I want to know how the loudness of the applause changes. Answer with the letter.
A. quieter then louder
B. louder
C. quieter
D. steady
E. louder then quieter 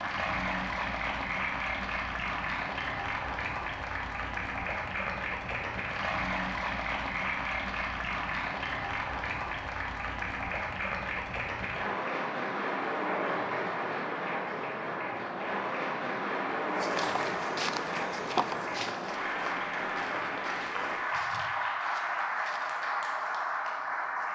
D.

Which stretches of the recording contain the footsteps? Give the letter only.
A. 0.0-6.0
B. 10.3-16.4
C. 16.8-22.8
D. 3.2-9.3
C.